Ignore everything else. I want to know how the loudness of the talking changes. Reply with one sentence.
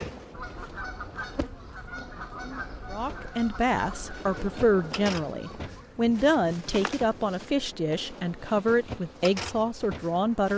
The volume of the talking stays about the same.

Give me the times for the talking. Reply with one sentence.
The talking can be heard from 2.9 to 10.5 s.